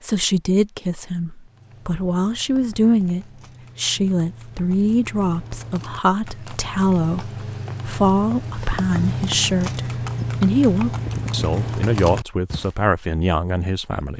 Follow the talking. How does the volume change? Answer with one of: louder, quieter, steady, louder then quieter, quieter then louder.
steady.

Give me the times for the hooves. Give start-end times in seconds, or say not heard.
1.4-12.8.